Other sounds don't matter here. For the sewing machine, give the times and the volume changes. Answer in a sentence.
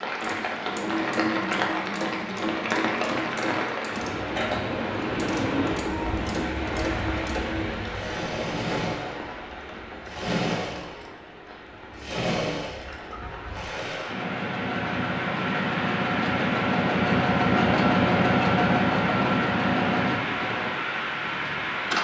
You can hear the sewing machine from 0.0 to 21.9 s, getting louder.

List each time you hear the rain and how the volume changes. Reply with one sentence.
The rain can be heard from 0.0 to 21.9 s, getting quieter then louder.